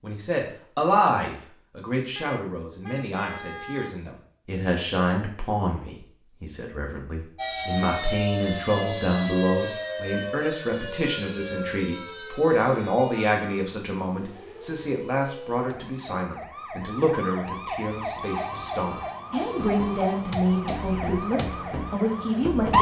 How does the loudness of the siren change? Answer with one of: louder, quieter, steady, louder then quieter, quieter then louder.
quieter then louder.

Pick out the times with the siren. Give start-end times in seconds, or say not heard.
7.3-22.7.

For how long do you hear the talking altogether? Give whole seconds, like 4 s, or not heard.
23 s.